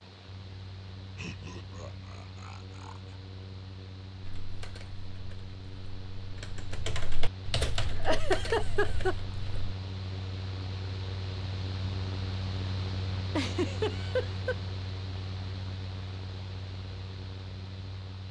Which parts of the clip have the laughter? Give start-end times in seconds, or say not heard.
1.1-3.1, 8.0-9.2, 13.3-14.6.